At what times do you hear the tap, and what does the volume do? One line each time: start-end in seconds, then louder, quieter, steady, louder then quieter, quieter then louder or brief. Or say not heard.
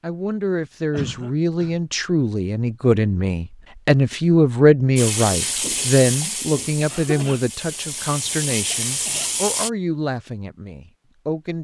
5.0-9.7 quieter then louder.